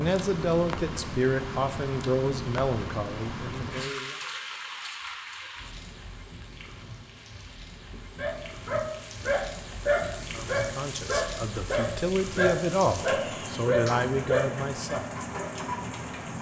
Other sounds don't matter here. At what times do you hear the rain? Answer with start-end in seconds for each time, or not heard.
0.0-16.3.